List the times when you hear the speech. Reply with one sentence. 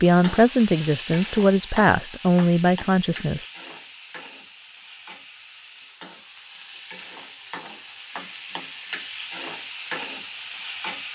You can hear the speech from 0.0 to 3.5 s.